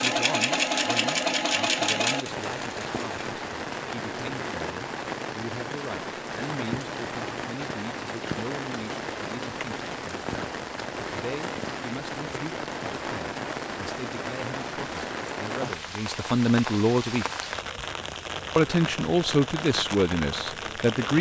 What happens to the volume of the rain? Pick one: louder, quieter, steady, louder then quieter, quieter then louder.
steady.